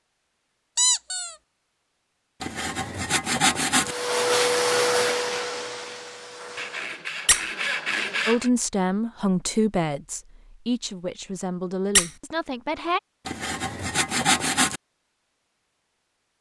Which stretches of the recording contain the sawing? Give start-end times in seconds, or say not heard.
2.4-4.0, 6.5-8.5, 13.2-14.8.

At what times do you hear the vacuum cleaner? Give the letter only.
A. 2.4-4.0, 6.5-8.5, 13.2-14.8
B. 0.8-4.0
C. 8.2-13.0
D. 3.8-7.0
D.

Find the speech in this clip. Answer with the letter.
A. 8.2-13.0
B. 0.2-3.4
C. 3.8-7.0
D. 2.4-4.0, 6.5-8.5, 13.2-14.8
A.